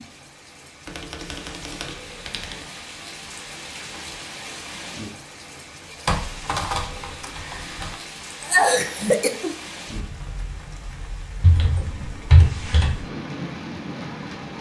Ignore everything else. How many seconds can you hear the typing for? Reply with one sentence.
You can hear the typing for 5 seconds altogether.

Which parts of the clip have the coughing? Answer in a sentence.
The coughing can be heard from 8.4 to 9.5 s.